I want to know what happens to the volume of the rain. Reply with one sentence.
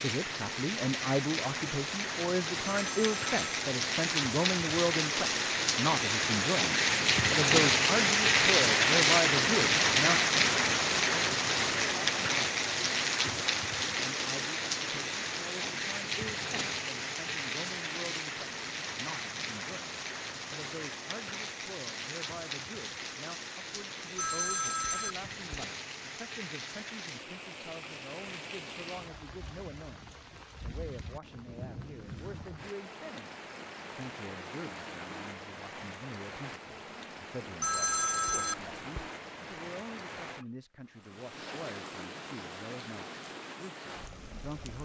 The volume of the rain goes down.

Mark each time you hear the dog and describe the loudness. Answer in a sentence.
The dog can't be heard in this clip.